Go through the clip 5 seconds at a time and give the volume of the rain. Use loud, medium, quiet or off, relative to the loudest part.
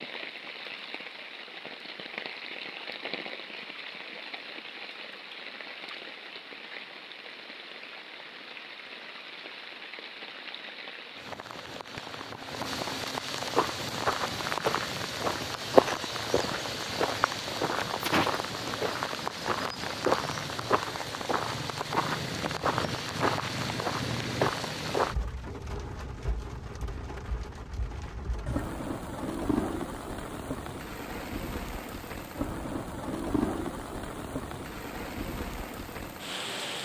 medium, medium, loud, loud, loud, loud, loud, loud.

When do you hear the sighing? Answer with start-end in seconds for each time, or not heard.
18.0-18.8.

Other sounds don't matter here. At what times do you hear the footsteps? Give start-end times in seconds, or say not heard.
13.5-25.1.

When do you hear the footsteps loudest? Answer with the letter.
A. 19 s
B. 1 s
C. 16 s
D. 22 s
C.